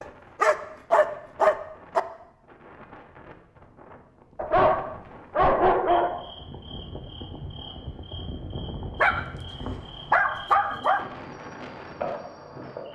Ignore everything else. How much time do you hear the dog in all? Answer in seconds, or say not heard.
6 s.